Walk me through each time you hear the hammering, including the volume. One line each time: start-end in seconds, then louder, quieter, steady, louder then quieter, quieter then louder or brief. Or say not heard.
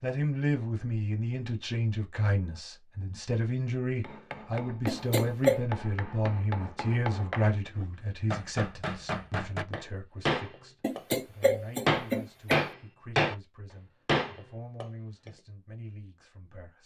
4.0-13.3 louder
14.1-15.3 brief.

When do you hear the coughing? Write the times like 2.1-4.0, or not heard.
4.8-5.6, 10.8-12.7.